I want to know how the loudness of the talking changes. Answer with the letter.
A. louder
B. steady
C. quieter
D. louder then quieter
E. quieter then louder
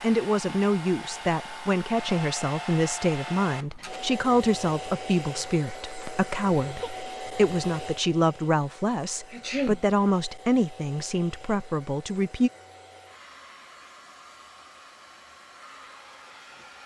B.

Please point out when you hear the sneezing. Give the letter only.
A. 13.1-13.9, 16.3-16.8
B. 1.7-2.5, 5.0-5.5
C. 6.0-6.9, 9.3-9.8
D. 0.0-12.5
C.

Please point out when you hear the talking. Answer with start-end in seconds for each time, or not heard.
0.0-12.5.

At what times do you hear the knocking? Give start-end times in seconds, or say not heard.
not heard.